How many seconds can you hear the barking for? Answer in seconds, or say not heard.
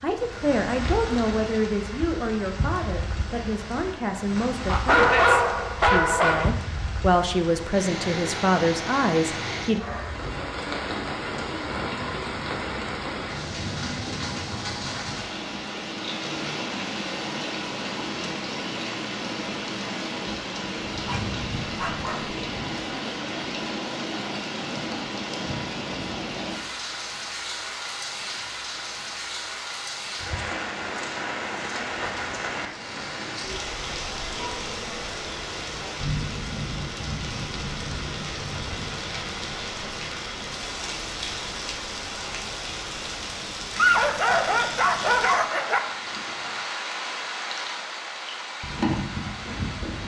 5 s.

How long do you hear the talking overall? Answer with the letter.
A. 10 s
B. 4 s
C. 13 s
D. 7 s
A.